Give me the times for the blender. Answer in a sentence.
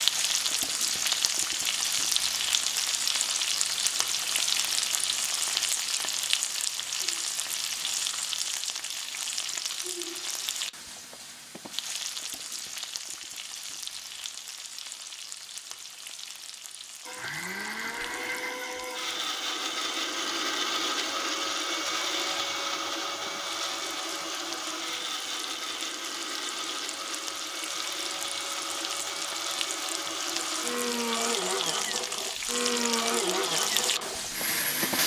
The blender can be heard from 17.1 to 35.0 s.